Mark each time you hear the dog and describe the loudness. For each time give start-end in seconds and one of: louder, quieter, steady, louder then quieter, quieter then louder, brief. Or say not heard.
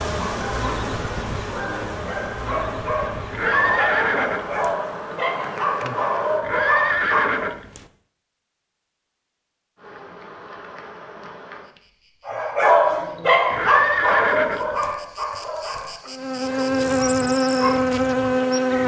0.2-7.5 louder
12.2-18.8 quieter then louder.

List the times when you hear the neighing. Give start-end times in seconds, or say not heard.
3.3-4.8, 6.4-7.8, 13.5-14.9.